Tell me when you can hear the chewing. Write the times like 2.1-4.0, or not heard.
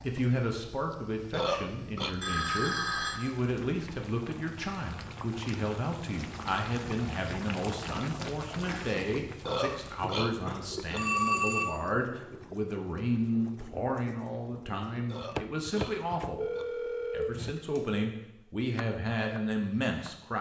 not heard.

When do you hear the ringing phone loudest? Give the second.
11 s.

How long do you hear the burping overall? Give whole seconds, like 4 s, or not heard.
4 s.